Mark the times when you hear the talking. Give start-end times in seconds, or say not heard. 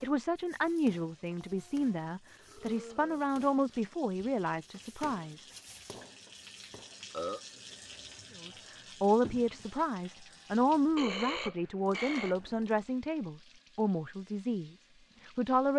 0.0-5.4, 8.4-15.7.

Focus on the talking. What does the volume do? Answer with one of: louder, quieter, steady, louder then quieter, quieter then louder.
steady.